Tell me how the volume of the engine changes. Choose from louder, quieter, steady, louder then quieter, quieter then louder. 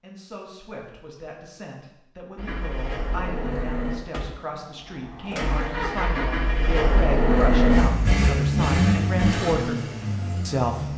louder then quieter.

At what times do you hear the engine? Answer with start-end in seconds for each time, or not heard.
2.4-10.9.